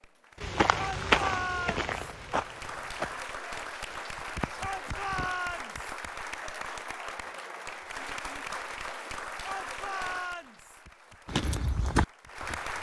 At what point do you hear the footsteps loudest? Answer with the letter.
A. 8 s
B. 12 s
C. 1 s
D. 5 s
C.